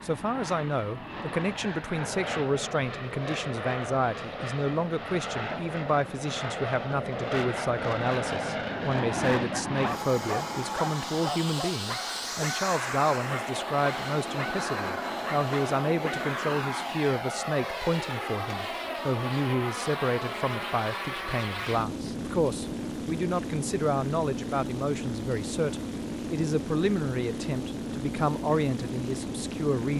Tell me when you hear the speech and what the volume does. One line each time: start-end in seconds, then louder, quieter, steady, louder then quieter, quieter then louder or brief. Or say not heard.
0.0-29.9 steady.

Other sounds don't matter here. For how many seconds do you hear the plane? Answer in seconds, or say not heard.
30 s.